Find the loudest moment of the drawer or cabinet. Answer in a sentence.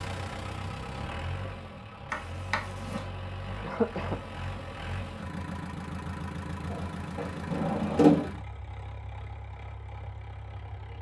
The loudest moment of the drawer or cabinet is at 8 seconds.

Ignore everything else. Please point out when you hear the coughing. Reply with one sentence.
The coughing can be heard from 3.6 to 4.2 s.